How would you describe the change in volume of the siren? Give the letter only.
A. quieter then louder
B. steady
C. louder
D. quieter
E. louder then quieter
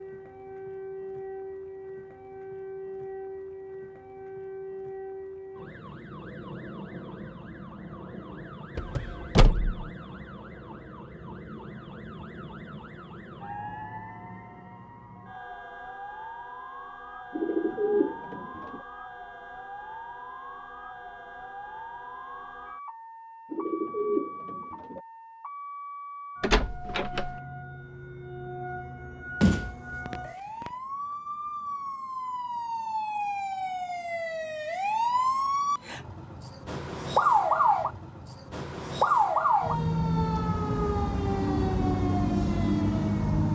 C.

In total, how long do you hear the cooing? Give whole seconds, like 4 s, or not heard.
3 s.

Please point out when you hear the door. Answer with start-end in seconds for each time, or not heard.
8.8-9.9, 26.4-27.4, 29.4-30.7.